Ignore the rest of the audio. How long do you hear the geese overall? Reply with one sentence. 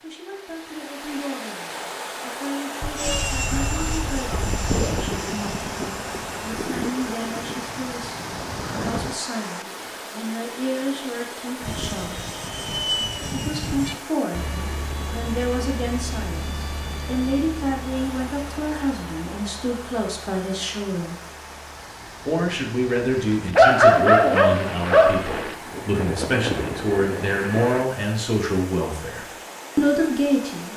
You can hear the geese for 2 seconds altogether.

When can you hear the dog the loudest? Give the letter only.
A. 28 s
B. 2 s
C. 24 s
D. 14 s
C.